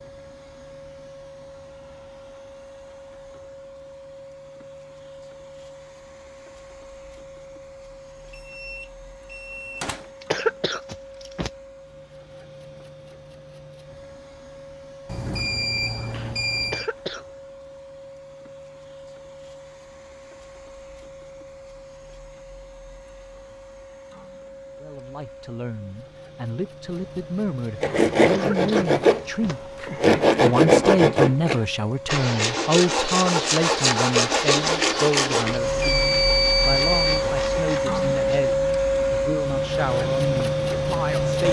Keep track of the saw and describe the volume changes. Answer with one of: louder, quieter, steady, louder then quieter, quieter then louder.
quieter.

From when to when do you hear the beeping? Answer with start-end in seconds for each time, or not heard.
8.3-10.1, 15.1-16.9, 35.8-37.2.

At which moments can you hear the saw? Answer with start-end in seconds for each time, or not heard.
27.8-38.6.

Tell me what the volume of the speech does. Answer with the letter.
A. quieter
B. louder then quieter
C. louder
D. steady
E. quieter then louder
B.